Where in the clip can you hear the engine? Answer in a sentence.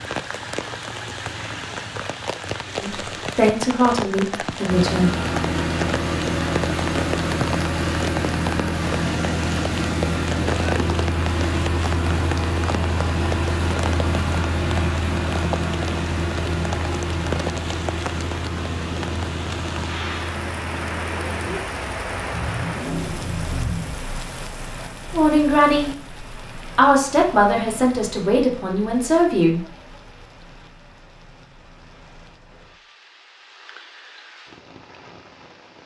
You can hear the engine from 4.7 to 23.9 s.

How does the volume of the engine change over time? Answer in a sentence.
The volume of the engine goes down.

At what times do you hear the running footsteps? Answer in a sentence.
You can't hear the running footsteps here.